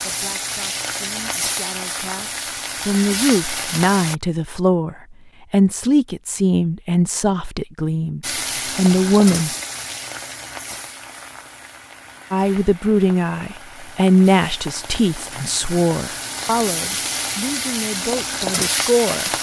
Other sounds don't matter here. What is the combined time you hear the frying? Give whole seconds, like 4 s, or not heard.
15 s.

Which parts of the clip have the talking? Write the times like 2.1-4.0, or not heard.
0.0-9.6, 12.3-19.3.